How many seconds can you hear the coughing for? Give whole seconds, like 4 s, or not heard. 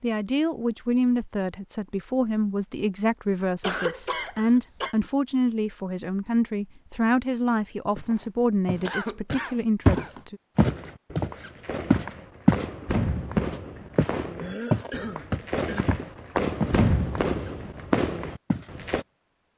5 s.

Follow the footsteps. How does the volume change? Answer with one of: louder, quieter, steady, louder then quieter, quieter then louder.
louder then quieter.